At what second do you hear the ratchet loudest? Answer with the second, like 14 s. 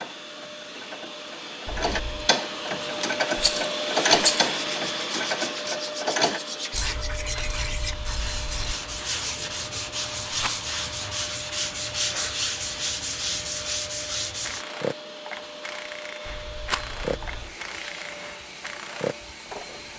4 s.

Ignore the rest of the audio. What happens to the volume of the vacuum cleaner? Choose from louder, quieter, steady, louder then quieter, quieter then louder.
quieter.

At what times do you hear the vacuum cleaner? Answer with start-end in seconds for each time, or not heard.
0.0-19.9.